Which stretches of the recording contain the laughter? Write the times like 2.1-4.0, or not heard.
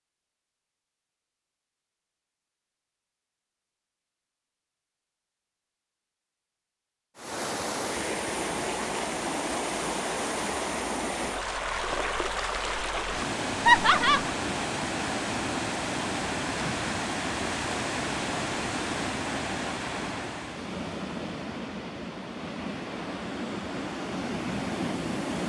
13.7-14.3.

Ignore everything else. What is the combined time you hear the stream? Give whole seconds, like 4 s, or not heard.
18 s.